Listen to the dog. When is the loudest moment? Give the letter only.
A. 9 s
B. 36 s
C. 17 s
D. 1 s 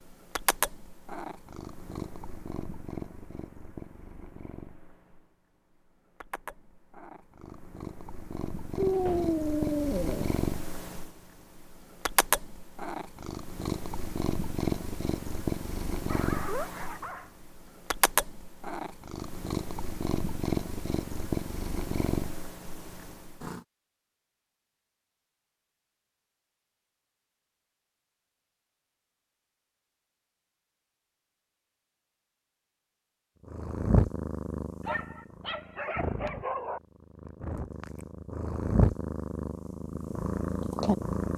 A.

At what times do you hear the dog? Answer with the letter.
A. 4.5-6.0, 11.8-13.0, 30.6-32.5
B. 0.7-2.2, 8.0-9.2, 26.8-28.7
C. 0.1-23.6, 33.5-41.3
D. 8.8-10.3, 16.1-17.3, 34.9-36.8
D.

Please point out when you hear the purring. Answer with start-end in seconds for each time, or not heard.
0.1-23.6, 33.5-41.3.